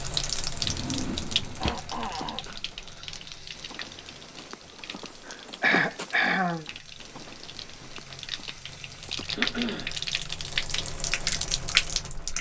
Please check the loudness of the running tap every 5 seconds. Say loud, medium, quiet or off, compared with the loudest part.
medium, medium, loud.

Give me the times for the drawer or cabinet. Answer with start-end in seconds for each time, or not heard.
0.6-1.8.